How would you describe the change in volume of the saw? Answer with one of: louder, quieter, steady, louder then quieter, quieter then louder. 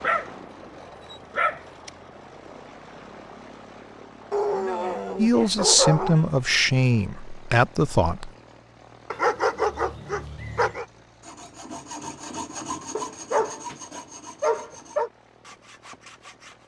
quieter.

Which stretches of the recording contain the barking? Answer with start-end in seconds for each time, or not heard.
0.0-1.9, 4.3-6.2, 9.1-10.8, 12.9-15.1.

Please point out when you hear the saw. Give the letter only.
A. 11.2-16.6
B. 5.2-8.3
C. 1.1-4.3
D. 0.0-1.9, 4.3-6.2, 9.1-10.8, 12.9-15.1
A.